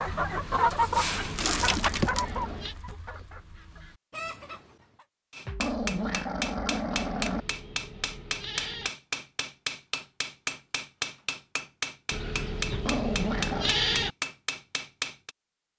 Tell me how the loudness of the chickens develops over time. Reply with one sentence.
The loudness of the chickens goes down, then up.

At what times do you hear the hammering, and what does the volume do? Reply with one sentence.
The hammering can be heard from 5.3 to 15.3 s, at a steady volume.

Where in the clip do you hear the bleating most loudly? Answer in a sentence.
The loudest moment of the bleating is at 14 seconds.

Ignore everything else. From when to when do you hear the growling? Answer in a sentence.
You can hear the growling from 1.3 to 2.8 s, from 5.5 to 7.5 s and from 12.7 to 13.8 s.